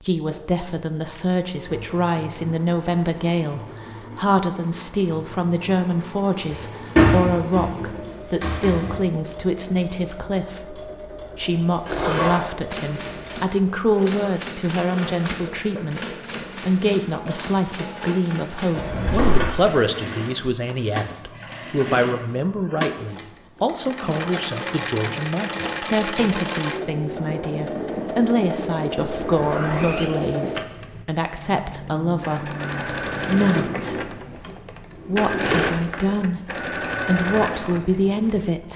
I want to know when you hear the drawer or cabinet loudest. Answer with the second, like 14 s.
7 s.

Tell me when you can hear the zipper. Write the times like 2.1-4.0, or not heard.
11.8-12.4, 29.2-30.1.